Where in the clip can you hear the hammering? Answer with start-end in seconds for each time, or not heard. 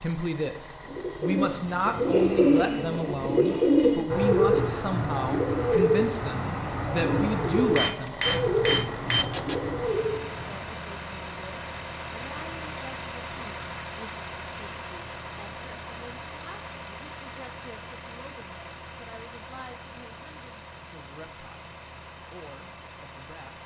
7.8-9.7.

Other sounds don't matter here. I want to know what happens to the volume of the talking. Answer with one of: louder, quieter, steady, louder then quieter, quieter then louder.
quieter.